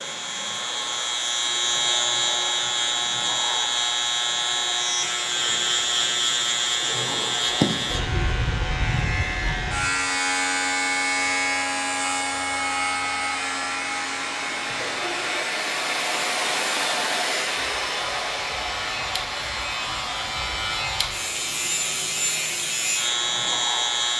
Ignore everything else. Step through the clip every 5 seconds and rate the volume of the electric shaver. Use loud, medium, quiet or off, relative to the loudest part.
loud, loud, loud, medium, loud.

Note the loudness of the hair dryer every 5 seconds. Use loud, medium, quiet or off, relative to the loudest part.
medium, medium, medium, loud, medium.